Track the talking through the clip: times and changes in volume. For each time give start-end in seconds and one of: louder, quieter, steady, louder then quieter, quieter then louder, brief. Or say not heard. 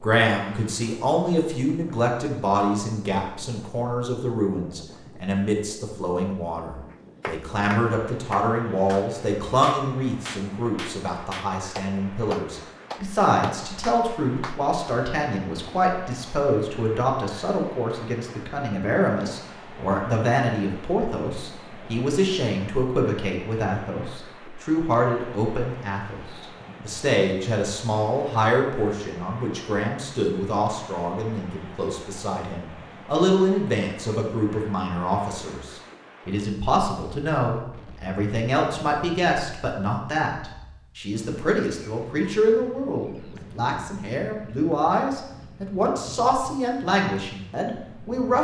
0.0-48.4 steady.